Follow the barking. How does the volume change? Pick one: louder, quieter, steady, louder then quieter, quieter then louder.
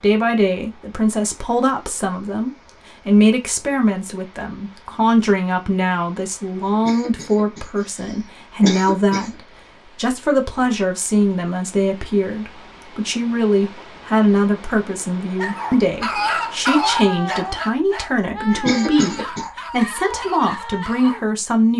quieter.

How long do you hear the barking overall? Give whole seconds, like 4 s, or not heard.
6 s.